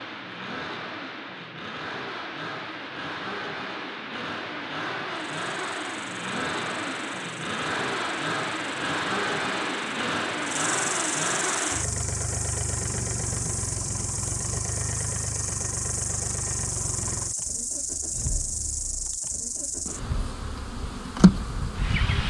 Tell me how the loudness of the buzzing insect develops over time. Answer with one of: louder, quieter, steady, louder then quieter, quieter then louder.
louder.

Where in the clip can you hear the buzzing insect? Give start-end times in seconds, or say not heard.
5.2-22.2.